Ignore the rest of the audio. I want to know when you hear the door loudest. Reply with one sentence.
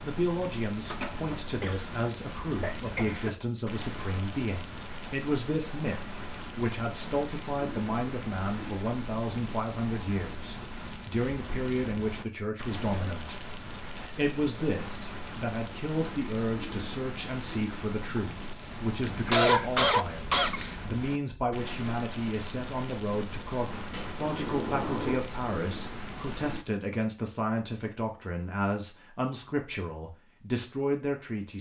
The volume of the door peaks at 25 seconds.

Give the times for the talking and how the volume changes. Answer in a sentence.
You can hear the talking from 0.0 to 31.5 s, at a steady volume.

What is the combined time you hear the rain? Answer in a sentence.
The rain can be heard for 27 seconds in total.